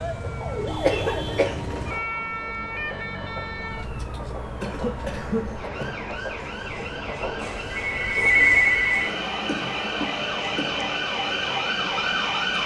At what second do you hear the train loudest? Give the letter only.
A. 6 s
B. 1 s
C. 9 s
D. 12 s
D.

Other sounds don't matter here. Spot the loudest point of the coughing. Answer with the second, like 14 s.
1 s.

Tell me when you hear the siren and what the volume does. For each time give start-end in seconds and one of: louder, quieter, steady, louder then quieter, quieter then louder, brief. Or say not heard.
0.0-12.6 quieter then louder.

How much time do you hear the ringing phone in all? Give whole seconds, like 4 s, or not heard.
2 s.